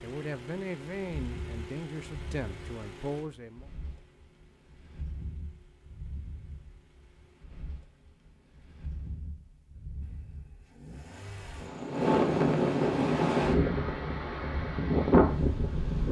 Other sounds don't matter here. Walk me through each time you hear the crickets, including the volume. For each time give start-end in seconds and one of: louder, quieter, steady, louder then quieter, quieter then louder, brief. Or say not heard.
not heard.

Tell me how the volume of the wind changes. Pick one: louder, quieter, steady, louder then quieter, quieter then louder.
louder.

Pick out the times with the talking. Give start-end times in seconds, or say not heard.
0.0-3.6.